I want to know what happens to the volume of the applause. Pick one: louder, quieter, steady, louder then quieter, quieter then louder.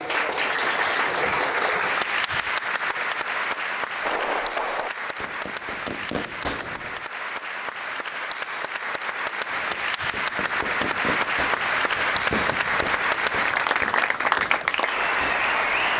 quieter then louder.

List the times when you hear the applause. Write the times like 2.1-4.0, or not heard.
0.0-15.9.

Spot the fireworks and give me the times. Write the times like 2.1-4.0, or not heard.
4.0-7.0, 9.5-15.9.